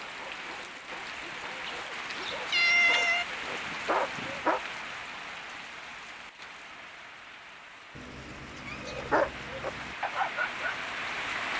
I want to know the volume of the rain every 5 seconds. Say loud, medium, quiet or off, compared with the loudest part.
loud, medium, loud.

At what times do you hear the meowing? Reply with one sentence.
You can hear the meowing from 1.6 to 3.2 s and from 8.0 to 9.9 s.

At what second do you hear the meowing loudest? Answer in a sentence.
The volume of the meowing peaks at 3 seconds.